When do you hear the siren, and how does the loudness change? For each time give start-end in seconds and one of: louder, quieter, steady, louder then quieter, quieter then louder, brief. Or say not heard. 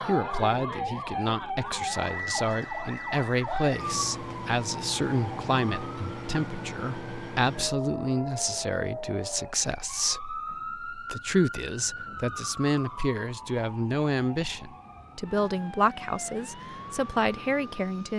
0.0-18.1 quieter.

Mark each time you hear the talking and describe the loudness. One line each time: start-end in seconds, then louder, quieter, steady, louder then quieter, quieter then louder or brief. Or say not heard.
0.1-18.1 steady.